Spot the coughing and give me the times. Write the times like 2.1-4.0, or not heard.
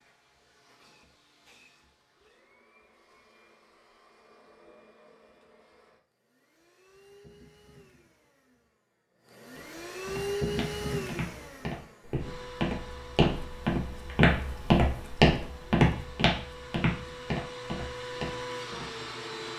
not heard.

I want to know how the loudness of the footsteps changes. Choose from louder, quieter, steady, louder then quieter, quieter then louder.
louder then quieter.